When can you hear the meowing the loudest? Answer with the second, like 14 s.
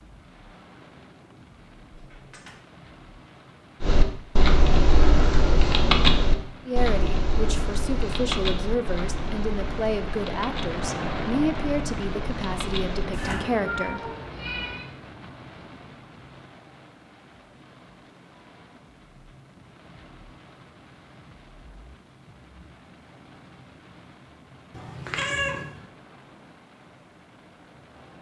25 s.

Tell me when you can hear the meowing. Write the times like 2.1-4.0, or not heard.
1.9-2.6, 13.2-14.8, 24.8-25.8.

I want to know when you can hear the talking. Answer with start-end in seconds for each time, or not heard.
6.7-14.1.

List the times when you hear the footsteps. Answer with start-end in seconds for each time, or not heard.
not heard.